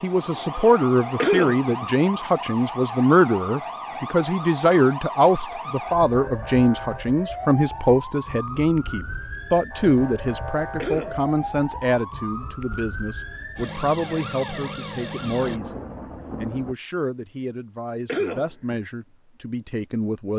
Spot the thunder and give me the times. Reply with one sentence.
The thunder can be heard from 15.2 to 16.8 s.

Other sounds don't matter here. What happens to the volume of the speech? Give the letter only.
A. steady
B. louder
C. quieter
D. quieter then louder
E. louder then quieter
C.